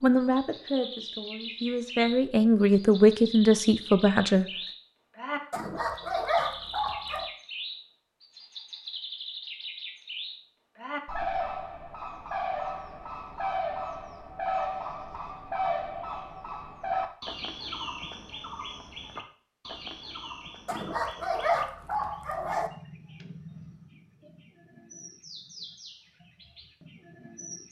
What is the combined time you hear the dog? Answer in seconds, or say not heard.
4 s.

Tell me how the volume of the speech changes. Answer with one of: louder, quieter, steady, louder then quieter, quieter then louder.
louder.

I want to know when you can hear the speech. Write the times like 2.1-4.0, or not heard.
0.0-4.5.